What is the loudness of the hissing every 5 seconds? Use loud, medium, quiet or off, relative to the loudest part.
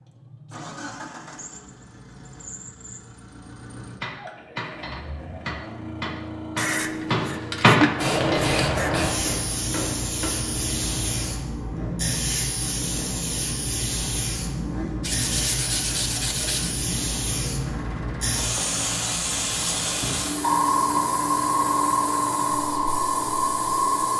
off, loud, medium, medium, loud.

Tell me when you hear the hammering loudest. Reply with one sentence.
The volume of the hammering peaks at 8 seconds.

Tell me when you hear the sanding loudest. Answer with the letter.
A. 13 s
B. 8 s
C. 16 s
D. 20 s
B.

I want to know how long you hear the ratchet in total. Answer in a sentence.
You can't hear the ratchet here.